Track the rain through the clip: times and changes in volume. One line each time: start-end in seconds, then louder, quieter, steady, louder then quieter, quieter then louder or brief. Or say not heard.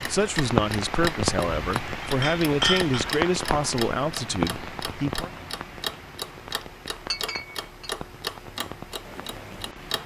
0.0-10.0 quieter.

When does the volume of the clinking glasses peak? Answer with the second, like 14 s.
3 s.